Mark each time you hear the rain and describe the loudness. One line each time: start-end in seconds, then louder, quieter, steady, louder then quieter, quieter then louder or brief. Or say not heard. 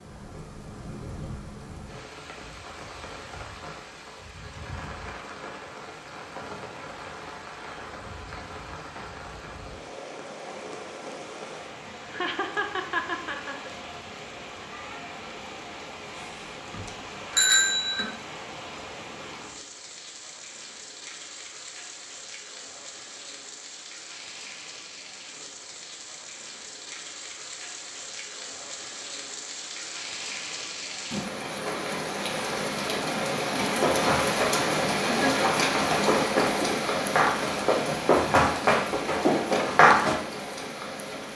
0.0-41.3 louder.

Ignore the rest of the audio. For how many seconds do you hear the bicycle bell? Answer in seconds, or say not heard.
2 s.